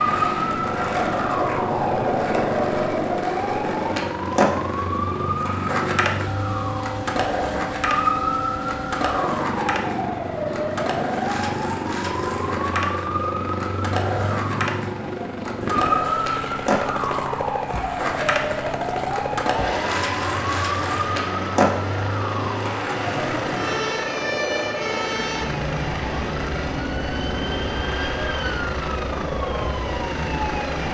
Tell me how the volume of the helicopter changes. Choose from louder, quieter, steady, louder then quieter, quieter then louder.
steady.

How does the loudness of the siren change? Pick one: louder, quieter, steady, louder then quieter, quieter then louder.
steady.